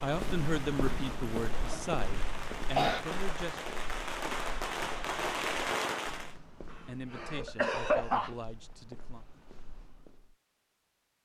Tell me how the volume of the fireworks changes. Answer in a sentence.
The volume of the fireworks goes up.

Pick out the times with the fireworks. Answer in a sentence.
The fireworks can be heard from 0.0 to 6.3 s.